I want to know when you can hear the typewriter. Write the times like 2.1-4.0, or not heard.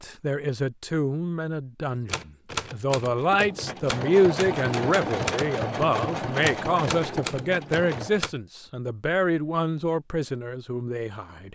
2.0-8.3.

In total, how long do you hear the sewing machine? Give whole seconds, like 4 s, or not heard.
5 s.